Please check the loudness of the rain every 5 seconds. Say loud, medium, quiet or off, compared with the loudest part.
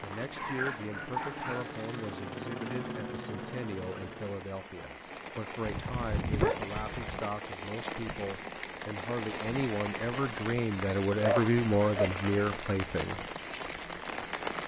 medium, loud, loud.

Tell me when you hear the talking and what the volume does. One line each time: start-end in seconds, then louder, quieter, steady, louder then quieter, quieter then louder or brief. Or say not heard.
0.0-13.2 louder.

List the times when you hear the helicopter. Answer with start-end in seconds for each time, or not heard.
0.1-4.4.